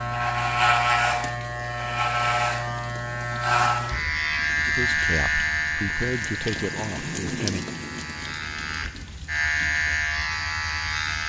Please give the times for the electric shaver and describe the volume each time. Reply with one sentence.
You can hear the electric shaver from 0.0 to 11.2 s, getting quieter then louder.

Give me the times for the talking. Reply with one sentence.
You can hear the talking from 4.7 to 7.7 s.